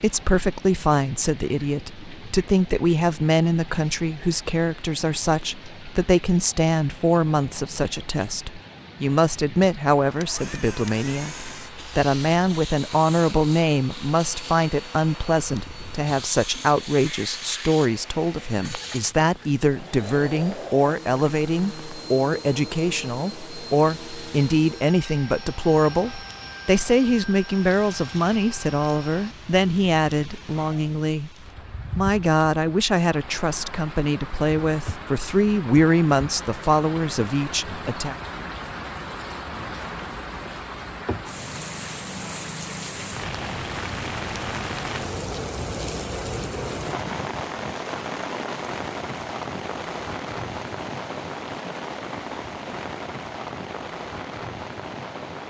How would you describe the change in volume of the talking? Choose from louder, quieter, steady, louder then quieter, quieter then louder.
steady.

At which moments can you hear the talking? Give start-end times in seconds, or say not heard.
0.0-31.3, 31.9-38.1.